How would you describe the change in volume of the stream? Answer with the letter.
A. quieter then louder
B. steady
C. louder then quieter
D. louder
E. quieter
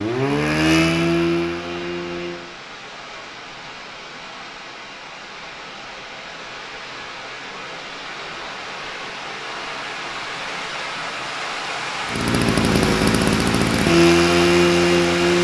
D.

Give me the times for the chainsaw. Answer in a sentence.
The chainsaw can be heard from 0.0 to 2.5 s and from 12.1 to 15.4 s.